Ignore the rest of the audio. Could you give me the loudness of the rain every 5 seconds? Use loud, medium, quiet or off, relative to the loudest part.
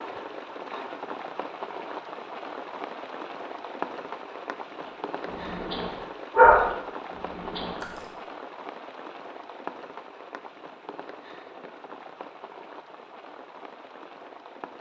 loud, loud, medium.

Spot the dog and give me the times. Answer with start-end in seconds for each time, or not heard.
5.2-8.1.